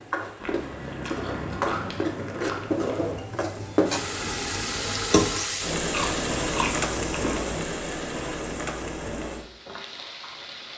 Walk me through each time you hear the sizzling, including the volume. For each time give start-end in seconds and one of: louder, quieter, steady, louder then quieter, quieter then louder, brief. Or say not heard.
0.0-10.7 louder then quieter.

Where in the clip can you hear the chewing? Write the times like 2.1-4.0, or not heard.
0.3-3.2, 5.9-7.8.